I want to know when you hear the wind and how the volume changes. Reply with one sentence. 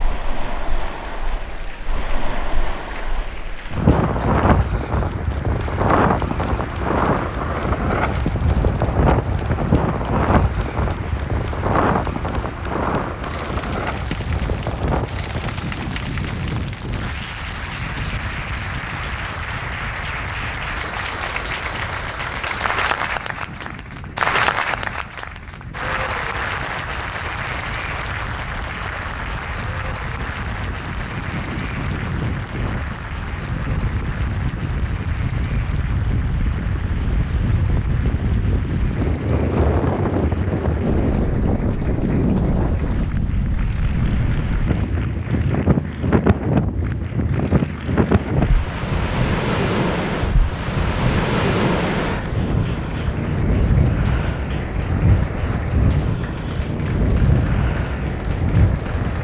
You can hear the wind from 0.0 to 59.2 s, getting quieter then louder.